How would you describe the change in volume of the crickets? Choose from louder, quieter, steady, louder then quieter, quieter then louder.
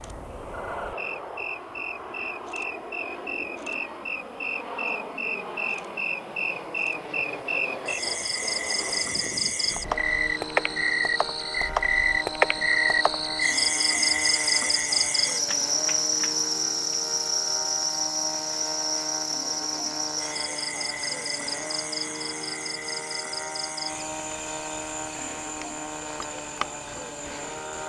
louder then quieter.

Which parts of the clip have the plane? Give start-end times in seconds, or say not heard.
0.0-27.8.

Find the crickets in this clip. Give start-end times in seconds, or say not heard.
0.0-27.8.